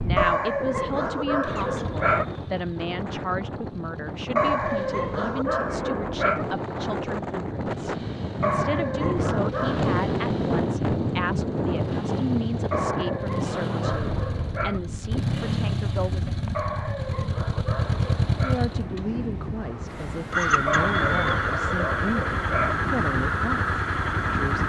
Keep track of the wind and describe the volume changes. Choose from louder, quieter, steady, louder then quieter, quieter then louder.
louder then quieter.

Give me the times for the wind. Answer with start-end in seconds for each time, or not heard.
0.0-24.6.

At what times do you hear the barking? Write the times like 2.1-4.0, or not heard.
0.1-2.2, 4.3-6.5, 8.4-9.9, 12.7-14.8, 16.5-18.6, 20.6-22.8.